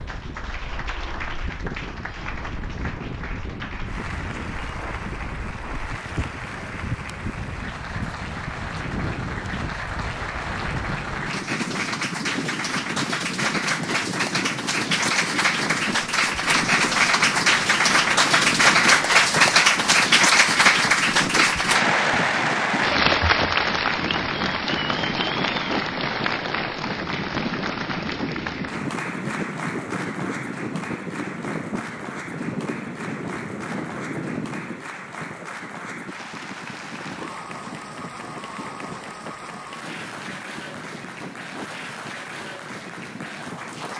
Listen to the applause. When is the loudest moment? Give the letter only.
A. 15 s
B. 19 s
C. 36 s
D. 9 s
B.